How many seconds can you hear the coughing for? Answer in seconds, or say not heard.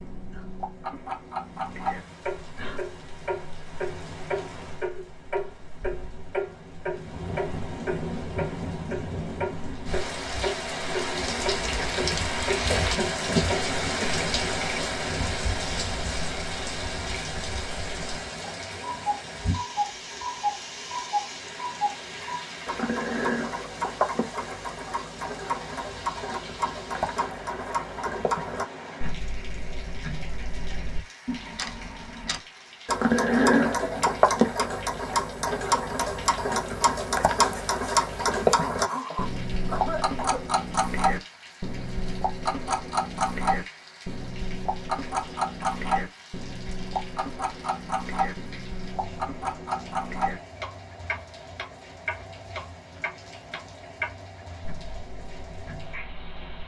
5 s.